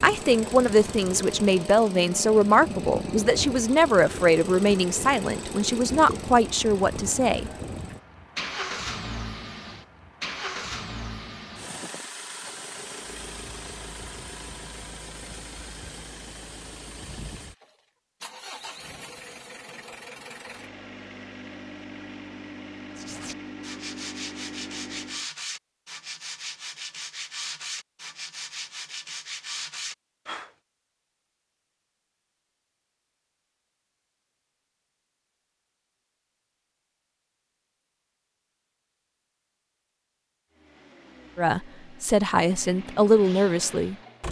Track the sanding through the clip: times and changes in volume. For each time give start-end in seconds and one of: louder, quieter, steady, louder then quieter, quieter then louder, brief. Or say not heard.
22.9-30.6 steady.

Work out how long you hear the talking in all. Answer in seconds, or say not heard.
10 s.